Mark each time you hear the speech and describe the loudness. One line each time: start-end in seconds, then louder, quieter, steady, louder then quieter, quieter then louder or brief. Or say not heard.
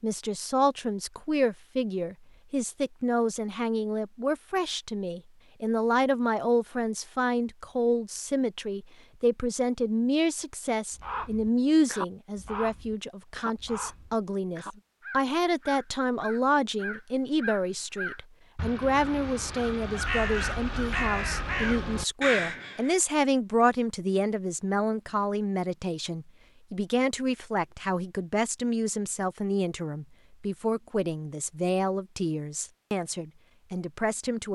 0.0-34.5 steady.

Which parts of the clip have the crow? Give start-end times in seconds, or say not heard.
10.9-22.9.